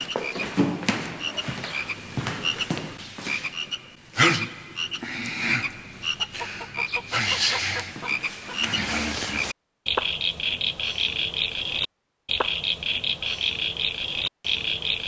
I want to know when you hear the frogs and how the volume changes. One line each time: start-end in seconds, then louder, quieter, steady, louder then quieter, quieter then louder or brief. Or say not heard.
0.0-15.0 steady.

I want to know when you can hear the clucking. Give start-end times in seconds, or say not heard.
6.2-8.8.